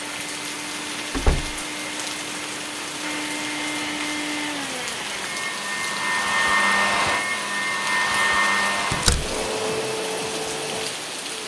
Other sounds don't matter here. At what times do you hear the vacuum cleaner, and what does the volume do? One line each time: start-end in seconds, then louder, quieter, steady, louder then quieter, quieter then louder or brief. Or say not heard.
0.0-11.4 louder then quieter.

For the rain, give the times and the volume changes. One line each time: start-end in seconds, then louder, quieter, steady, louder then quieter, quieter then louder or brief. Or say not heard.
0.0-11.4 steady.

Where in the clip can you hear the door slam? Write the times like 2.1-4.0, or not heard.
1.1-1.6, 8.9-9.3.